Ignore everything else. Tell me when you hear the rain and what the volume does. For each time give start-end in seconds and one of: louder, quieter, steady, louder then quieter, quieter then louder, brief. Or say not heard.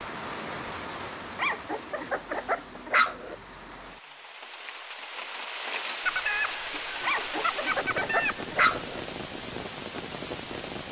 0.0-10.8 quieter then louder.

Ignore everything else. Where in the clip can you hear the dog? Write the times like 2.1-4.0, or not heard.
1.4-3.4, 7.0-9.0.